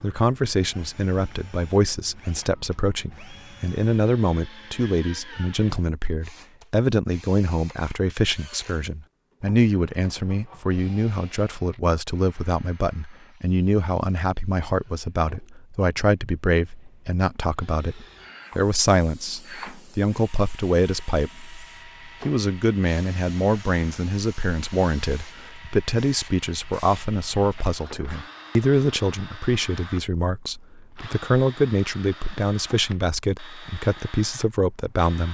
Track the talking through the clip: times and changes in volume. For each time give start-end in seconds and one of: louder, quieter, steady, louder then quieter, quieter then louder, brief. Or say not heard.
0.0-35.2 steady.